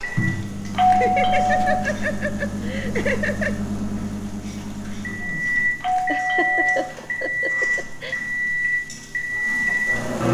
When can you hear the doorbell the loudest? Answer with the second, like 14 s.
1 s.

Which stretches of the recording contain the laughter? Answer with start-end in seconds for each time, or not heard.
0.9-3.5, 6.0-8.2.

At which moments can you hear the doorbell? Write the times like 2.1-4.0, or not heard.
0.8-1.9, 5.8-7.0.